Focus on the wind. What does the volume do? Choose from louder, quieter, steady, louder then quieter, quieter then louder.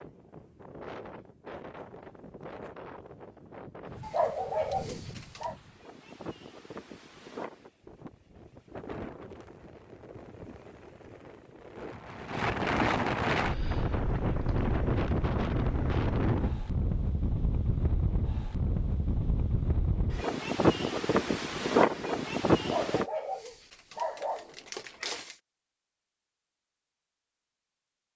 louder.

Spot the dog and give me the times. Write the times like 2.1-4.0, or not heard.
4.0-5.5, 22.6-25.4.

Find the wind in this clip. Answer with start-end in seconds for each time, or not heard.
0.0-23.1.